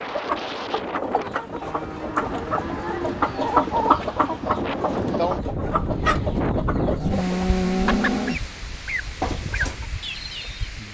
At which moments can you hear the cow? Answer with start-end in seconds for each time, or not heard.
1.6-3.6, 7.0-8.4.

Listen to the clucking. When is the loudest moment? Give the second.
4 s.